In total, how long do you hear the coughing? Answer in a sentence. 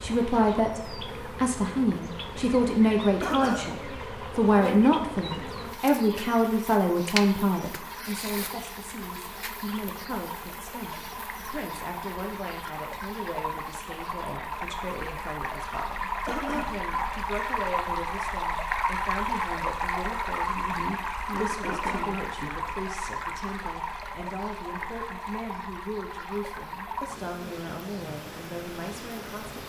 The coughing can be heard for 2 seconds in total.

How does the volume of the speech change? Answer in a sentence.
The volume of the speech goes down.